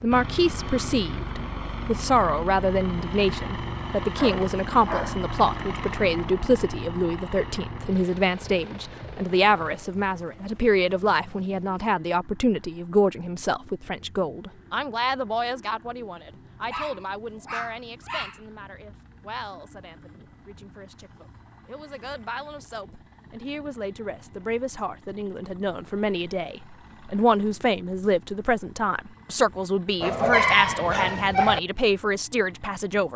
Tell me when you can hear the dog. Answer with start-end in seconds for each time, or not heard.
4.2-5.2, 16.7-18.4, 30.0-31.6.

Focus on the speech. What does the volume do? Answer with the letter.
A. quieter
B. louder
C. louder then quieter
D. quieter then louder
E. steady
D.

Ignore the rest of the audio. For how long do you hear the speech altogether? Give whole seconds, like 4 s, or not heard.
33 s.